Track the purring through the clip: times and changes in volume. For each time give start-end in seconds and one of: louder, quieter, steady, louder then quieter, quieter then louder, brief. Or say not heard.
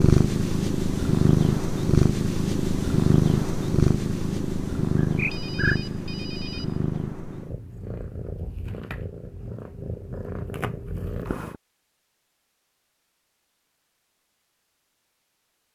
0.0-11.6 quieter.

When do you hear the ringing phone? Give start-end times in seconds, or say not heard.
5.0-6.8.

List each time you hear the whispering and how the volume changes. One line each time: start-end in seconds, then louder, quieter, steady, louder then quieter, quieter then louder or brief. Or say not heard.
not heard.